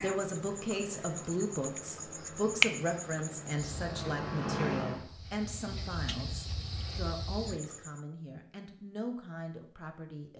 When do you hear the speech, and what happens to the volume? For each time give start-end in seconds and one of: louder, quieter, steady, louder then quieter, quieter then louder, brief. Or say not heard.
0.0-10.3 quieter.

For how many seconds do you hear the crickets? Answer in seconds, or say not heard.
8 s.